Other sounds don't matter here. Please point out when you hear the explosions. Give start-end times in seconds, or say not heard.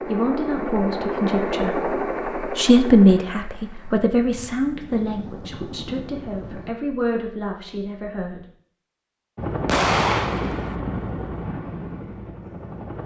9.7-10.8.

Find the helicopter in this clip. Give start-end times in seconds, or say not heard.
0.0-6.8, 9.3-13.0.